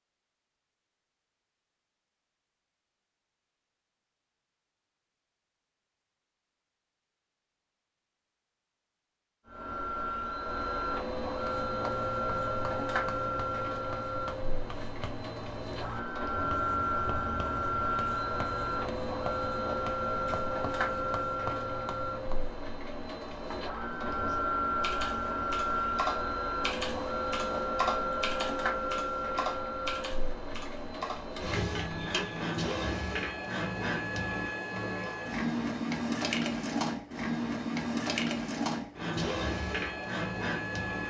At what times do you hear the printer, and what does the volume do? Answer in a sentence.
You can hear the printer from 9.4 to 41.0 s, at a steady volume.